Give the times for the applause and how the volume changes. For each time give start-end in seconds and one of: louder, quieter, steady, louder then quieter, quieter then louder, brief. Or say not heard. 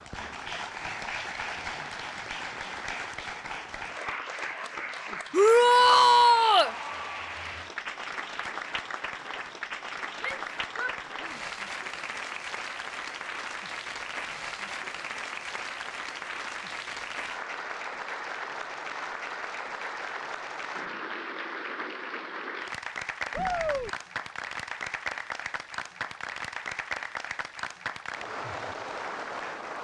0.0-29.7 steady.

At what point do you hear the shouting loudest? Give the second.
6 s.